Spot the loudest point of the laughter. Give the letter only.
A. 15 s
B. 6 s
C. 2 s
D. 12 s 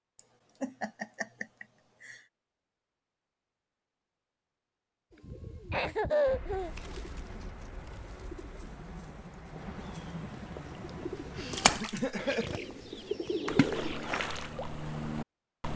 B.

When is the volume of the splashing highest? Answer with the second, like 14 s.
12 s.